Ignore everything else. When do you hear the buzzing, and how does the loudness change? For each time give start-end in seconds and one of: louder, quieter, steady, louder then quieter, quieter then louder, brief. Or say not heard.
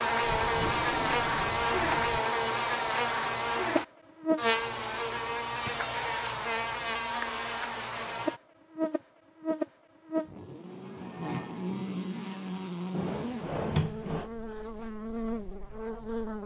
0.0-16.4 quieter.